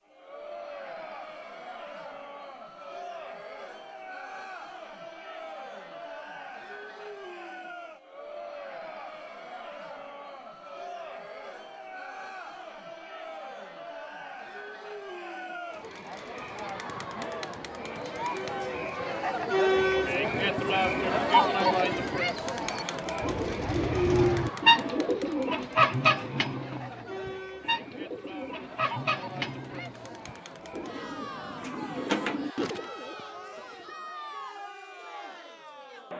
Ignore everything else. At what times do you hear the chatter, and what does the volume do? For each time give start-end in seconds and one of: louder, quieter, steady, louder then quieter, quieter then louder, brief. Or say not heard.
0.1-36.1 louder then quieter.